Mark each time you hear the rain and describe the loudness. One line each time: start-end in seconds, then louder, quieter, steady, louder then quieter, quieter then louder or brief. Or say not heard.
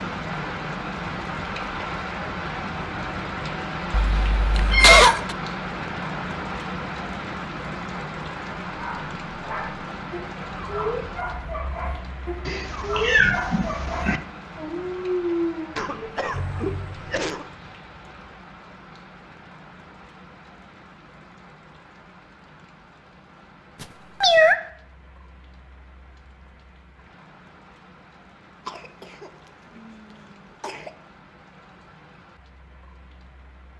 0.0-33.7 quieter.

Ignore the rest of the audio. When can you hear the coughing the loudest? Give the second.
5 s.